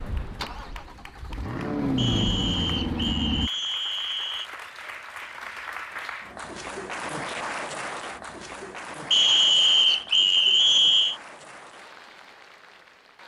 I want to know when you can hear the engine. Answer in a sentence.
The engine can be heard from 0.0 to 3.5 s.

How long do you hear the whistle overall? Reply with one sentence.
The whistle can be heard for 5 seconds in total.